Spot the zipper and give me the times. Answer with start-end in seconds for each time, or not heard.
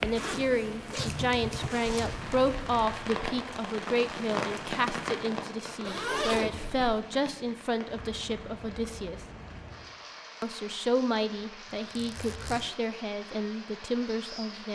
0.1-2.2, 5.8-7.0, 11.9-12.8.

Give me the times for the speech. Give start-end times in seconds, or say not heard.
0.0-9.2, 10.4-14.7.